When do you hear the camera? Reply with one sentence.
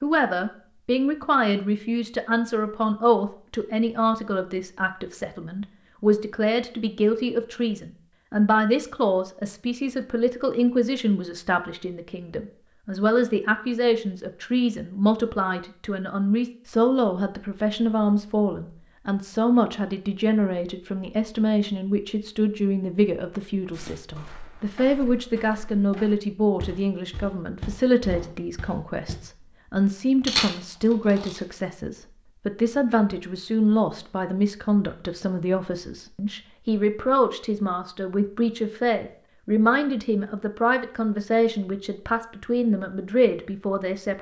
The camera can be heard from 30.2 to 31.4 s.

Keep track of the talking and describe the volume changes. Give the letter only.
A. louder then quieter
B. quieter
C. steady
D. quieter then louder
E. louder
C.